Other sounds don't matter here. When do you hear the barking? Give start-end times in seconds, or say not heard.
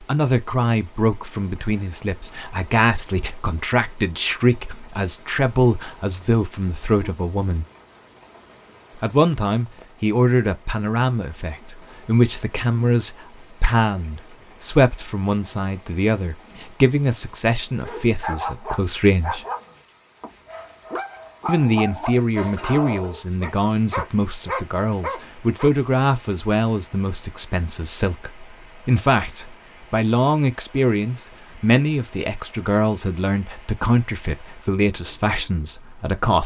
17.8-25.8.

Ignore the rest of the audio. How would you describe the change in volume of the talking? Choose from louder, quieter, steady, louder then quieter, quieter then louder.
steady.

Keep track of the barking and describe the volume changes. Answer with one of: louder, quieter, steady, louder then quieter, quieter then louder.
quieter then louder.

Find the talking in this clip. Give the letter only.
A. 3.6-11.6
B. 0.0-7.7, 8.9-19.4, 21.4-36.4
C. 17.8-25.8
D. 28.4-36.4
B.